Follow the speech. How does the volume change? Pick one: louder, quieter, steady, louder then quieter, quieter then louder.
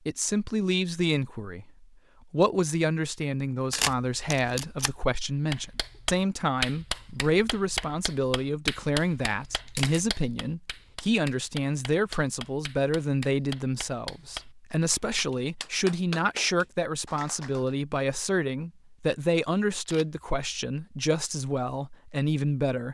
steady.